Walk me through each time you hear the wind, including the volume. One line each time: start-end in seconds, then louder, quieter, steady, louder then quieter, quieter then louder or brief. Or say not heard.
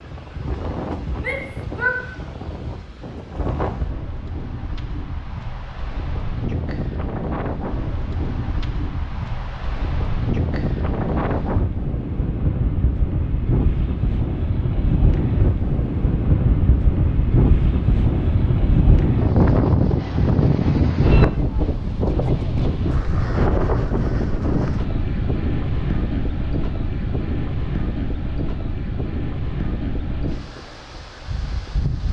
0.0-32.0 louder then quieter.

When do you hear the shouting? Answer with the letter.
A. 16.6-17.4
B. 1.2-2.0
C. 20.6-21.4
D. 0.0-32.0
B.